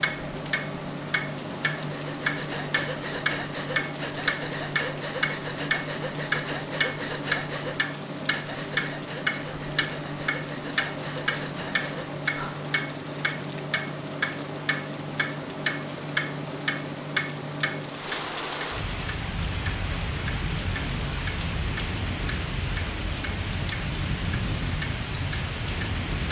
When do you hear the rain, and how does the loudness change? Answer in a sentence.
You can hear the rain from 0.0 to 26.2 s, getting louder.